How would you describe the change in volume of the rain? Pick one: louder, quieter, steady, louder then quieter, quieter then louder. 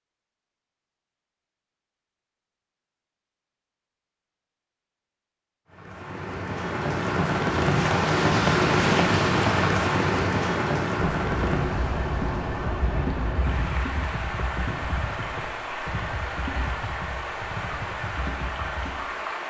quieter.